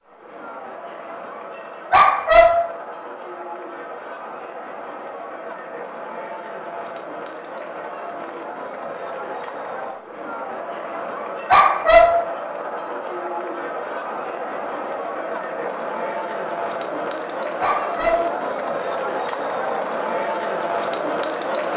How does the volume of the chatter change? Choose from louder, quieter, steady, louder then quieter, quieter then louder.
louder.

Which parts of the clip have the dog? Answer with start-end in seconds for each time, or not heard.
1.9-2.8, 11.4-12.3, 17.6-18.4.